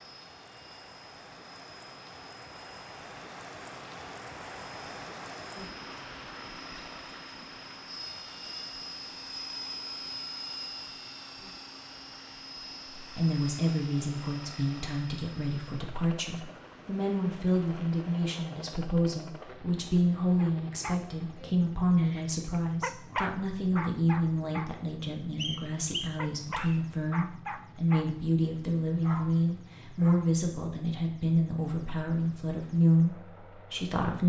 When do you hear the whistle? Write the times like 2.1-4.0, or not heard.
25.4-26.8.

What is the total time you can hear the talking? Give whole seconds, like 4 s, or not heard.
21 s.